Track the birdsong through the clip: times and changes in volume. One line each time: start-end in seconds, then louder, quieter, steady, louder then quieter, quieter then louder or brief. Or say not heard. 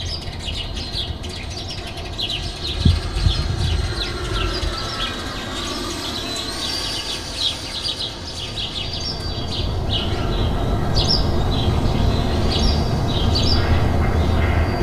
0.0-14.7 louder.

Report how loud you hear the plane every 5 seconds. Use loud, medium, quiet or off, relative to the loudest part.
loud, loud, medium.